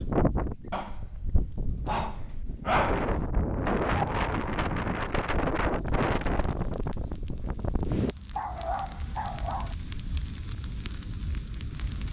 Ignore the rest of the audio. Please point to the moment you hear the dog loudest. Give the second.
3 s.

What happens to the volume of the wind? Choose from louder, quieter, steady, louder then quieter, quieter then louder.
louder then quieter.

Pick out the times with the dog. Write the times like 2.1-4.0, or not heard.
0.7-1.1, 1.9-3.2, 8.3-9.8.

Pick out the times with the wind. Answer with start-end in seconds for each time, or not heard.
0.0-8.2.